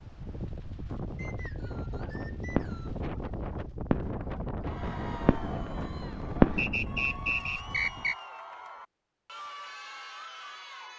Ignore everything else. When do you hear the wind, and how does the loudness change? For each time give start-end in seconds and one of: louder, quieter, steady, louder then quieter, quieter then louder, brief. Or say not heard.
0.0-8.2 steady.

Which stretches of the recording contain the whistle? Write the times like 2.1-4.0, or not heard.
1.1-3.0, 6.5-8.2.